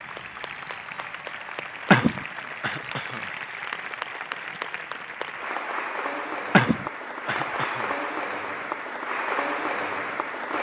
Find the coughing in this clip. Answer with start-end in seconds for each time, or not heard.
1.9-3.2, 6.5-7.8.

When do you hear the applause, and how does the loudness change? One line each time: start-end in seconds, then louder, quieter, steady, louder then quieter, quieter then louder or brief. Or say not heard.
0.0-10.5 louder.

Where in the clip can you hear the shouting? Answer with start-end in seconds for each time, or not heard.
not heard.